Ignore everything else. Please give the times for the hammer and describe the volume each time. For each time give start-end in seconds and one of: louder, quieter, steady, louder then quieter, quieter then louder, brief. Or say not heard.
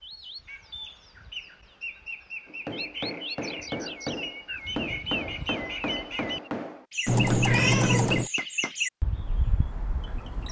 2.5-8.8 steady.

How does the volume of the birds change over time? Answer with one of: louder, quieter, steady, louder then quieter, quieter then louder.
louder.